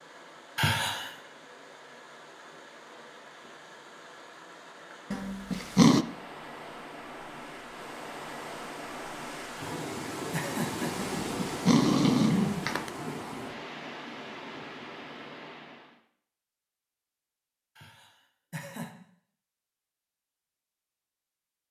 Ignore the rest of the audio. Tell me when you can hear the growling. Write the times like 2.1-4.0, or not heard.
5.1-6.0, 10.9-12.9.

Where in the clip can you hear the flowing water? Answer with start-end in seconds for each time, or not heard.
0.0-16.0.